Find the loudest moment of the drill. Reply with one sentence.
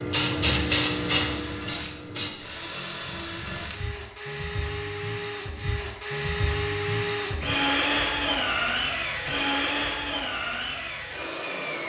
The volume of the drill peaks at 8 seconds.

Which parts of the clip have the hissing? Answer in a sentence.
The hissing can be heard from 0.0 to 2.3 s.